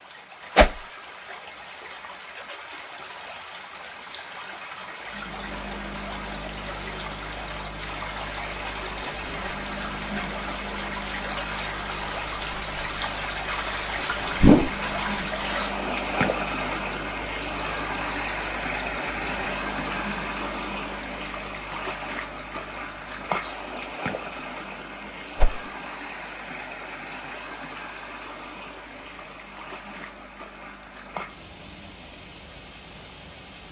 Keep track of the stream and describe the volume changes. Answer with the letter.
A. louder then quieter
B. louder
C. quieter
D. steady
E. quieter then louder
A.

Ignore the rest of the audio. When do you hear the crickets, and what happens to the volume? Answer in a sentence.
You can hear the crickets from 5.0 to 33.6 s, getting quieter.